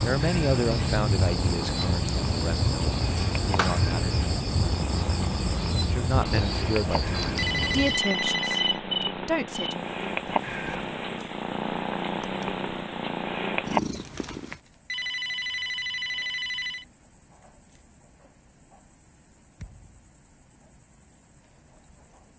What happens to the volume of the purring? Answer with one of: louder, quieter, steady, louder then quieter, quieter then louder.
louder.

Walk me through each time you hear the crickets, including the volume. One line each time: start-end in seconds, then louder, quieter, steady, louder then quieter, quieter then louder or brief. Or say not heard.
0.0-22.3 quieter.